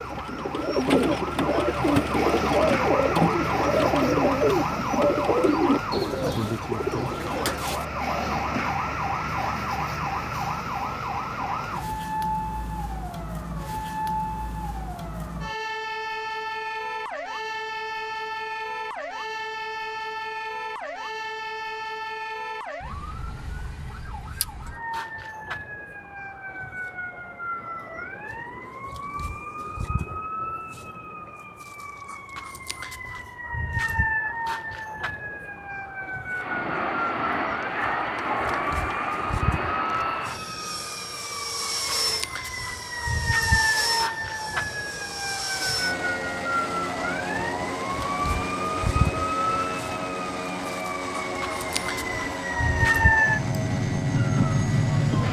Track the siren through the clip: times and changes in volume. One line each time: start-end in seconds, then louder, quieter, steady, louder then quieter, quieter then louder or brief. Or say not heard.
0.0-55.2 quieter then louder.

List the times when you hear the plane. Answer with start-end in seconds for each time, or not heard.
36.3-55.2.